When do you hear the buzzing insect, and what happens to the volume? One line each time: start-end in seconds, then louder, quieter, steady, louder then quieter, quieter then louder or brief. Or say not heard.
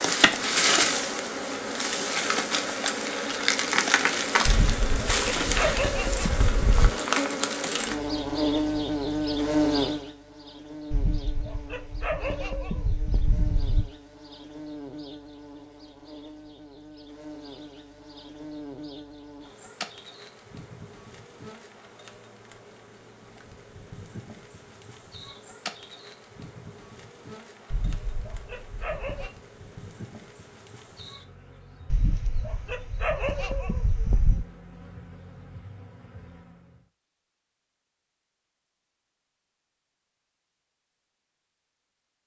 0.0-36.9 quieter.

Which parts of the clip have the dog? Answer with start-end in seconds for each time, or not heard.
4.5-6.9, 10.9-13.9, 27.7-29.3, 31.9-34.5.